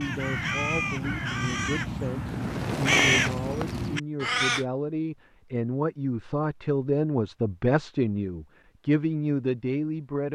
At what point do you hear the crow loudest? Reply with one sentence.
The loudest moment of the crow is at 3 seconds.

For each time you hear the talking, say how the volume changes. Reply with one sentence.
The talking can be heard from 0.0 to 10.2 s, getting louder.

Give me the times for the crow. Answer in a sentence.
You can hear the crow from 0.0 to 4.7 s.